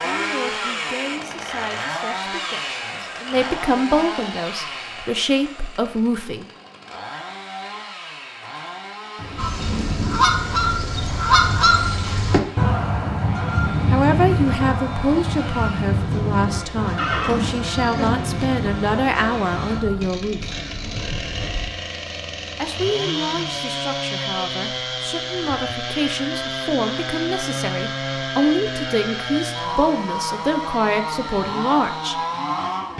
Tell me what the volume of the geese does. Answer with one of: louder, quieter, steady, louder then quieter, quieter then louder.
quieter.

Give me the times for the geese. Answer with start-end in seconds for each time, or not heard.
9.3-20.1.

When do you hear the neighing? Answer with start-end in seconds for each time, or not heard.
16.9-18.1.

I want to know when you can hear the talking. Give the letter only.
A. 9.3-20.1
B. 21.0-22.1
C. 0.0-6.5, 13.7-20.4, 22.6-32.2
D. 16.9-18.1
C.